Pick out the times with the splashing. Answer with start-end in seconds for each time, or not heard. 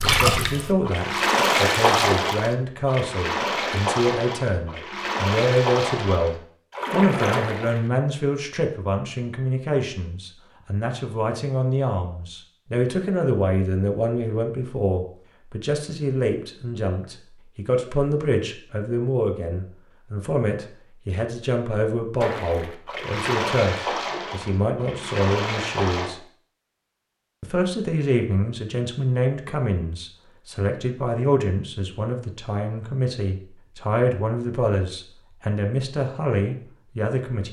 0.0-7.8, 22.2-26.1.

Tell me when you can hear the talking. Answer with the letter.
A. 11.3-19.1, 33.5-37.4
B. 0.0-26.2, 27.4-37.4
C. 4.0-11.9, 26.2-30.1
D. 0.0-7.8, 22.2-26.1
B.